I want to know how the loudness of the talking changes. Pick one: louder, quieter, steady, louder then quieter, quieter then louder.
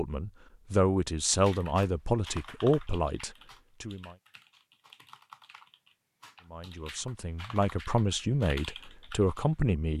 quieter then louder.